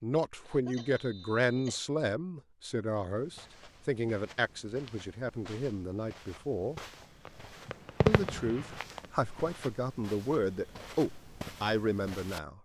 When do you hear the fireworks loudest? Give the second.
8 s.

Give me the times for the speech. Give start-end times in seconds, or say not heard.
0.0-6.8, 8.1-12.5.